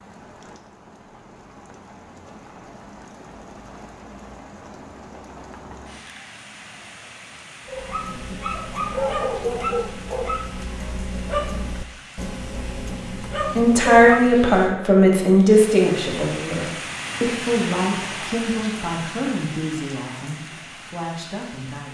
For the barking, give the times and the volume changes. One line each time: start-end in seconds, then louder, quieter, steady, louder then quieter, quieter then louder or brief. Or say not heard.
7.7-14.5 quieter then louder.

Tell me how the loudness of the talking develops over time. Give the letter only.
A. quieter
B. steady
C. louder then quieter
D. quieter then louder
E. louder
A.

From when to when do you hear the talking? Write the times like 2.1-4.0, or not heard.
13.6-21.8.